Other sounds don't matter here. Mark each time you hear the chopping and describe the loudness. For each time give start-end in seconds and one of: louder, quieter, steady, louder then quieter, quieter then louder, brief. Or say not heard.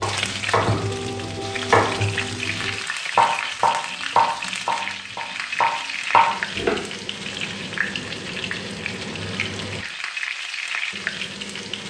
0.0-6.8 louder.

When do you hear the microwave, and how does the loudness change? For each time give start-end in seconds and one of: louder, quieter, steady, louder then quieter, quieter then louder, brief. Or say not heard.
not heard.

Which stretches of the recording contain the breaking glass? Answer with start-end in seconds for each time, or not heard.
not heard.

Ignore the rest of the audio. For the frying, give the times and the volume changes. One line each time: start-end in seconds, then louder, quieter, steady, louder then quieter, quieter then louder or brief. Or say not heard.
0.0-11.8 steady.